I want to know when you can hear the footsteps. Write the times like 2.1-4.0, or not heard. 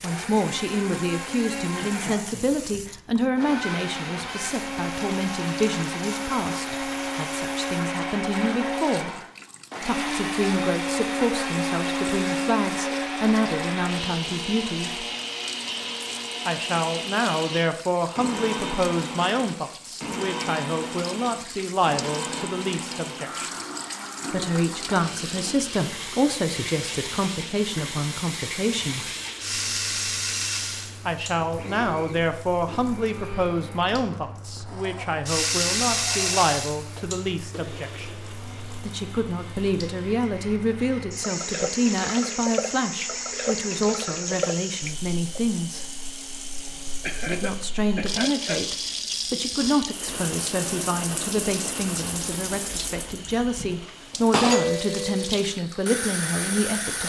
not heard.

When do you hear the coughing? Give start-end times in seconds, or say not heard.
1.8-2.5, 47.0-48.6.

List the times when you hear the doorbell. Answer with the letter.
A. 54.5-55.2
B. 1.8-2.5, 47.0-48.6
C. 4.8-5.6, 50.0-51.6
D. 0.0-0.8
A.